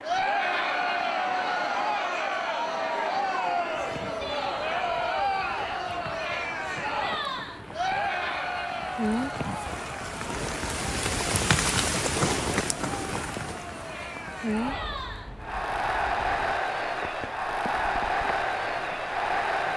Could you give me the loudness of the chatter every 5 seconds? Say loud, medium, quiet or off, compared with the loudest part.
loud, loud, medium, loud.